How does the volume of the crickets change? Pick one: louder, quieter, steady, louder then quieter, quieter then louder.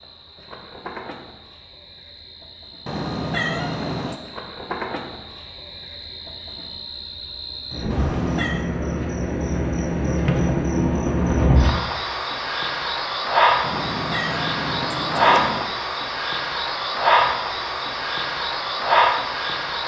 louder.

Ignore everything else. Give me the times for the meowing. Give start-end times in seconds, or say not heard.
2.9-4.2, 7.9-8.7, 13.6-15.7.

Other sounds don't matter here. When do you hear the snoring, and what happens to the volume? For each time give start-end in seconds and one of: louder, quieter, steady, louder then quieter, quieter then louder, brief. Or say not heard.
not heard.